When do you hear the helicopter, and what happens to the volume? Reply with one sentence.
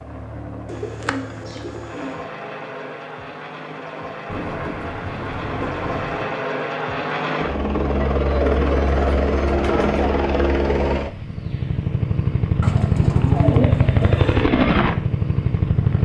You can hear the helicopter from 0.0 to 16.0 s, getting louder.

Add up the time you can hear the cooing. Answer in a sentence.
You can hear the cooing for 7 seconds altogether.